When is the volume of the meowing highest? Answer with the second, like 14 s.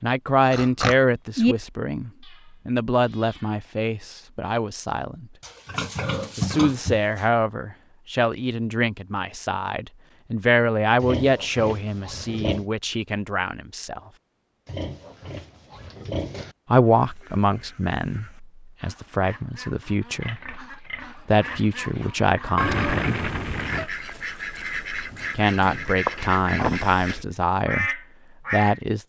23 s.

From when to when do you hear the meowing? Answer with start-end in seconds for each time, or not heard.
2.2-4.2, 22.6-23.9.